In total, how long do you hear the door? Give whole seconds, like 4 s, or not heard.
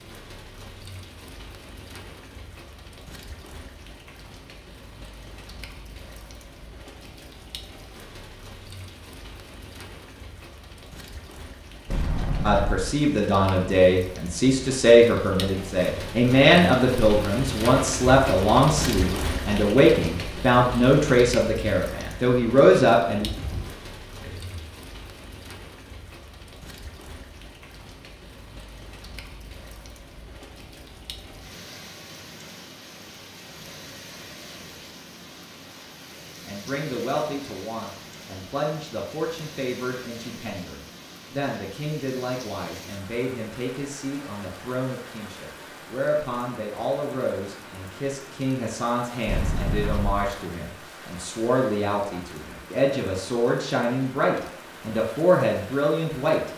3 s.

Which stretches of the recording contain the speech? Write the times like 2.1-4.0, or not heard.
12.4-23.3, 36.5-56.4.